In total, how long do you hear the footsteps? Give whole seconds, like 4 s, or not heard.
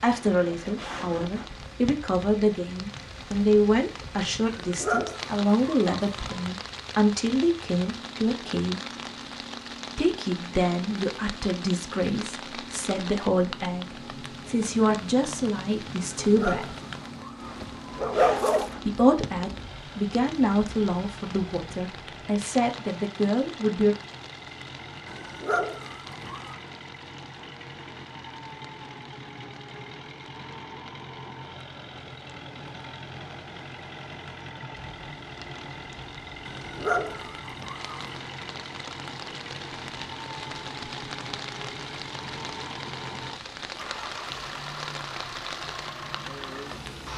not heard.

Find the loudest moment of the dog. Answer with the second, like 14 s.
18 s.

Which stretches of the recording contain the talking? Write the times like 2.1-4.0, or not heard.
0.0-8.8, 9.9-16.8, 18.9-23.9.